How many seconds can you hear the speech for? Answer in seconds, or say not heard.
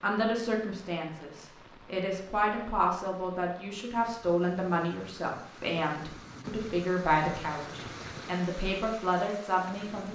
10 s.